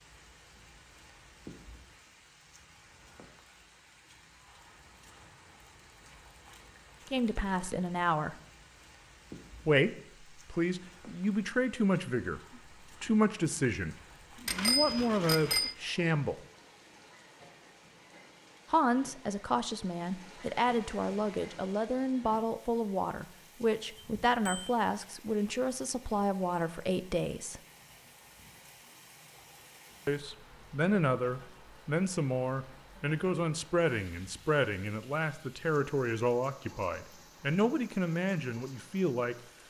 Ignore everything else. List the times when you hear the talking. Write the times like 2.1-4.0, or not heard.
7.0-8.3, 9.7-16.4, 18.7-27.6, 30.1-39.4.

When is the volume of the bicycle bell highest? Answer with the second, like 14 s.
15 s.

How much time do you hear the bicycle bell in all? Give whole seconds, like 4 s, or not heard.
2 s.